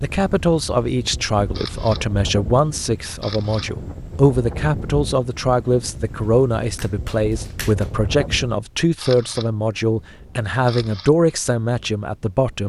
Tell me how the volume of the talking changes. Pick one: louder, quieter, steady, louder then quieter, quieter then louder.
steady.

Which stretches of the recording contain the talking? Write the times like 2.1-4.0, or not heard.
0.0-12.6.